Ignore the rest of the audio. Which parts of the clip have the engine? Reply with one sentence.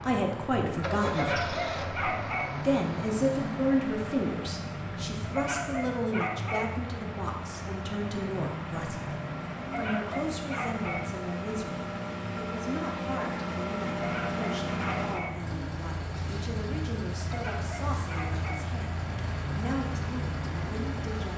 You can hear the engine from 0.0 to 21.3 s.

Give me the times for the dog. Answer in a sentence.
The dog can be heard from 1.1 to 2.5 s, from 5.2 to 6.7 s, from 9.6 to 11.1 s, from 13.9 to 15.3 s and from 17.2 to 18.6 s.